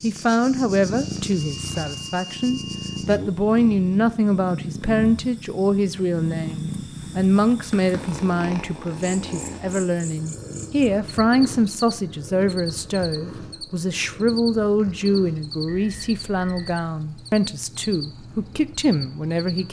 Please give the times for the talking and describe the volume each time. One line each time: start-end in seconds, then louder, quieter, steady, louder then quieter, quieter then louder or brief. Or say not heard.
0.0-19.6 steady.